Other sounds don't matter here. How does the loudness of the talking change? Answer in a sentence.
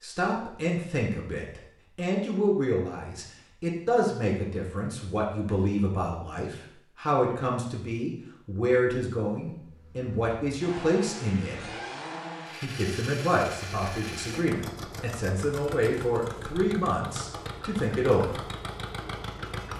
The volume of the talking stays about the same.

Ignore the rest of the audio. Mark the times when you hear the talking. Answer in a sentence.
You can hear the talking from 0.0 to 11.7 s and from 12.6 to 18.5 s.